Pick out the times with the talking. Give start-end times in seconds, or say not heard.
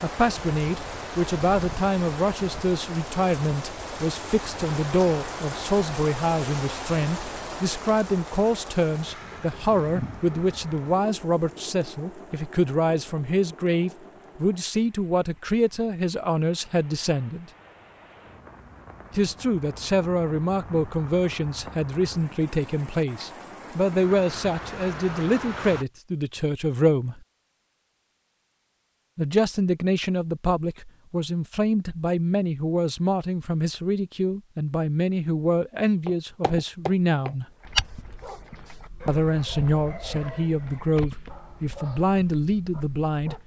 0.0-17.4, 19.1-27.2, 29.1-37.5, 39.0-43.4.